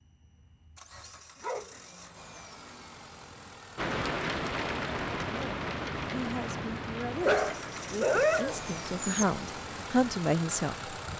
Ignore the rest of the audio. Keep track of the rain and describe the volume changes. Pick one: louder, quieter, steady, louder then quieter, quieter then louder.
quieter.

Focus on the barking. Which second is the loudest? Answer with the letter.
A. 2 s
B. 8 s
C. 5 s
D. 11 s
B.